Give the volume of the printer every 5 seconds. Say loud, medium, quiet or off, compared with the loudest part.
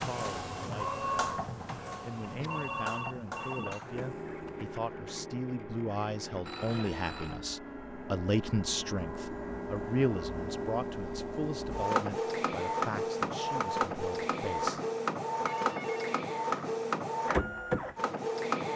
medium, medium, loud, loud.